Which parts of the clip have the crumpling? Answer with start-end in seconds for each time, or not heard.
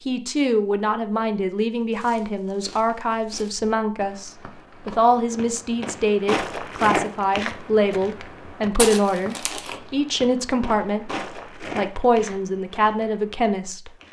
8.8-9.8.